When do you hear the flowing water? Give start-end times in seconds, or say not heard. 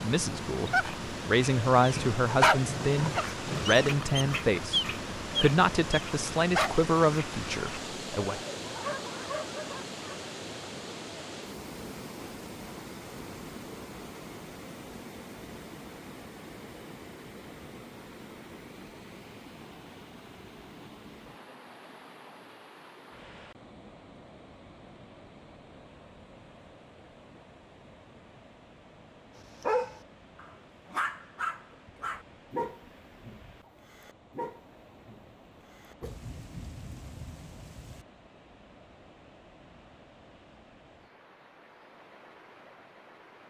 0.0-43.4.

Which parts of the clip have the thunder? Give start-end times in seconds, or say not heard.
1.9-3.8, 36.0-38.0.